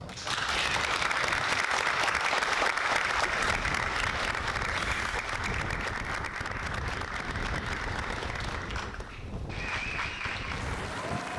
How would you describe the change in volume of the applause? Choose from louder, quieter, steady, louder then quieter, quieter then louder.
quieter.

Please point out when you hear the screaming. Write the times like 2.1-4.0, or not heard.
4.7-5.3.